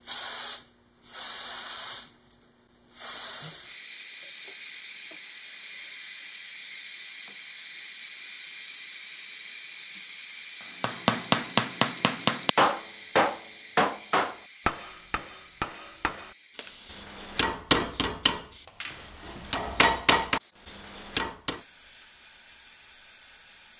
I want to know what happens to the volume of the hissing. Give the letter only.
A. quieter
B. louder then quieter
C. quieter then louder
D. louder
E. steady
A.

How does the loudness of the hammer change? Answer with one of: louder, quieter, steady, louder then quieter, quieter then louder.
quieter then louder.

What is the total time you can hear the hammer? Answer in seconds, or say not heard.
11 s.